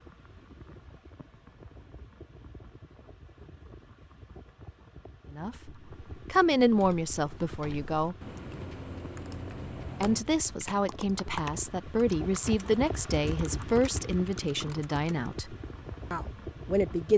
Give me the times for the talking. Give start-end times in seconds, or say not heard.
5.3-8.2, 10.0-17.1.